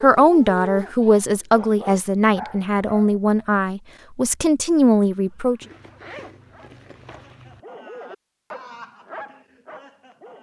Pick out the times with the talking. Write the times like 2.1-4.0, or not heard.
0.0-5.6.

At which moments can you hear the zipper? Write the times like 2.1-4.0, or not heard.
5.6-7.6.